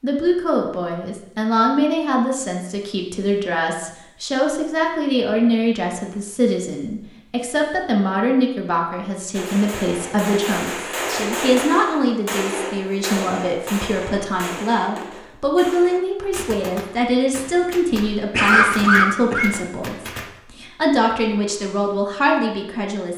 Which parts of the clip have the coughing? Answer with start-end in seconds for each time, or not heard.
17.9-19.5.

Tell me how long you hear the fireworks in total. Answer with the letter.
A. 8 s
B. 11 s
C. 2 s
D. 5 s
B.